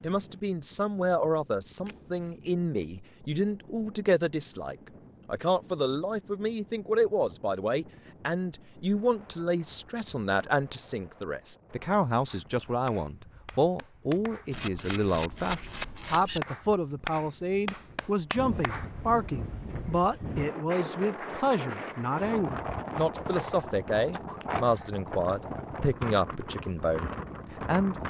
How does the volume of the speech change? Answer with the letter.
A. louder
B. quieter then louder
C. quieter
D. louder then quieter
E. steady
E.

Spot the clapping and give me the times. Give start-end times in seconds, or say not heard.
12.2-18.9.